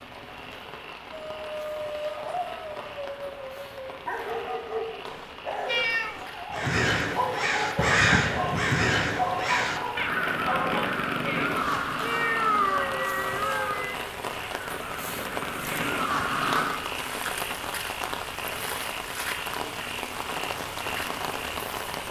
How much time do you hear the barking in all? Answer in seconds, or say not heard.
10 s.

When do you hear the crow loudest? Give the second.
8 s.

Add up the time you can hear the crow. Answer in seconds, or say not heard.
10 s.